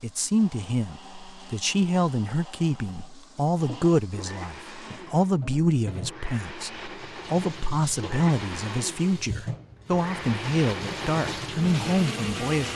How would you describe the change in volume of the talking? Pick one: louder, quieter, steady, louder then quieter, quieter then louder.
steady.